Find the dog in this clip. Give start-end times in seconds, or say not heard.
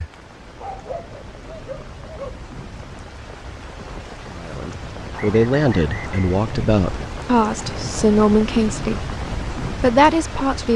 0.6-2.4.